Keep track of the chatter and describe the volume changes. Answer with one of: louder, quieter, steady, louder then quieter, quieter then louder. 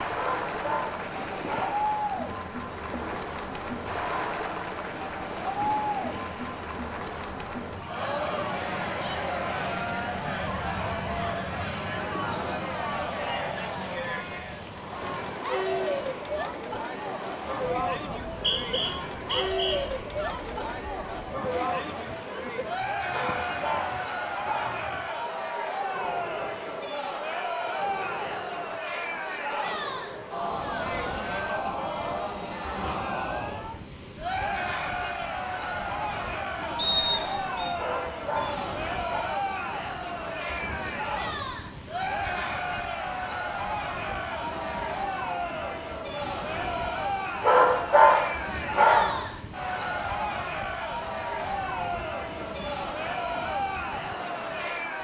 steady.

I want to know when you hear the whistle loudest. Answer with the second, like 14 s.
37 s.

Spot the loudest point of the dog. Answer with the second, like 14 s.
48 s.